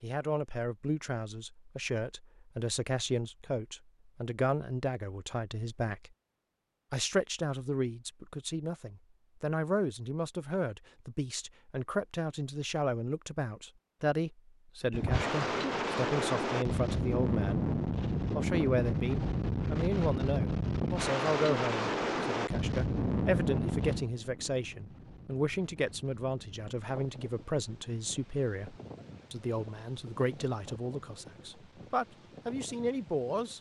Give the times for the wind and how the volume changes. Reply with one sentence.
The wind can be heard from 14.9 to 33.5 s, getting quieter.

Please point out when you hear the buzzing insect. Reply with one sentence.
The buzzing insect can't be heard in this clip.